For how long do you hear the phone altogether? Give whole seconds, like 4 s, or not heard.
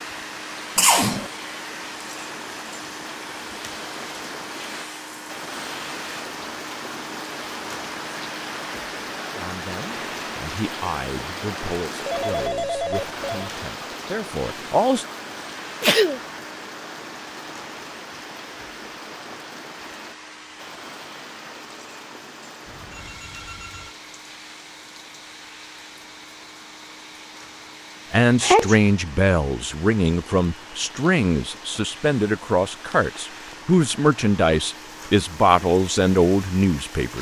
3 s.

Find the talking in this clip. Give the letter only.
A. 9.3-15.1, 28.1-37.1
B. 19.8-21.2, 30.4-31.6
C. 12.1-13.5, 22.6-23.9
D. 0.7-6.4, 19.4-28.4
A.